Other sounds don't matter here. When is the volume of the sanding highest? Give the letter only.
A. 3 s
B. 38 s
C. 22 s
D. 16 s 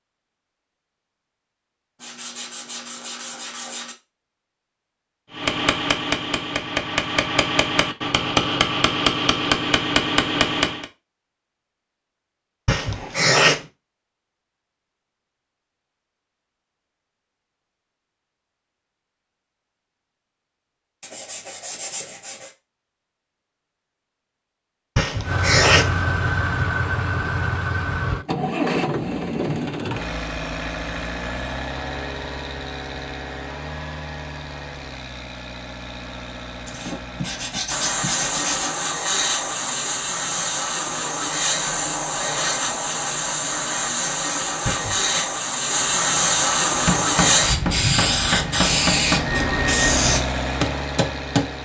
B.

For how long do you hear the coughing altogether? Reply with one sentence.
You can hear the coughing for 3 seconds altogether.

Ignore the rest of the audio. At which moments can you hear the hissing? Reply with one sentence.
You can hear the hissing from 37.6 to 50.2 s.